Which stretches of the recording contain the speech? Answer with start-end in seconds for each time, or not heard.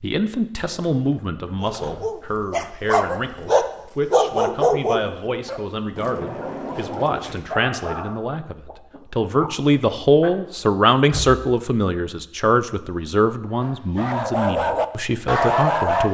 0.0-16.0.